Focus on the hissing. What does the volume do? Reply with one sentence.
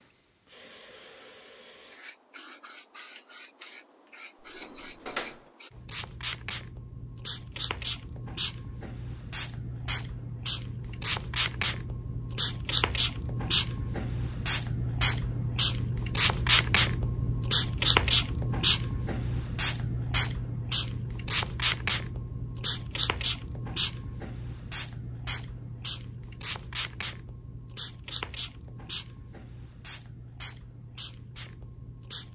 The loudness of the hissing goes up, then down.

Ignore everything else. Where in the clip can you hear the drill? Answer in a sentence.
The drill can't be heard in this clip.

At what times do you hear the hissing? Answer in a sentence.
You can hear the hissing from 0.0 to 32.3 s.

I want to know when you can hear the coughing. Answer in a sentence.
The coughing can't be heard in this clip.